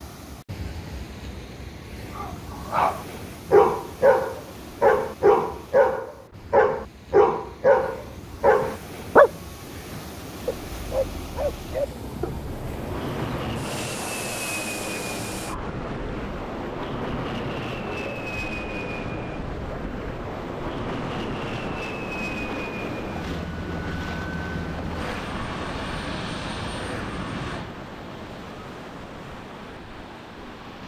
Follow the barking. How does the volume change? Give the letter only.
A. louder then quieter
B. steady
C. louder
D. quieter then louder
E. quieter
E.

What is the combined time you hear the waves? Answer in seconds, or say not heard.
31 s.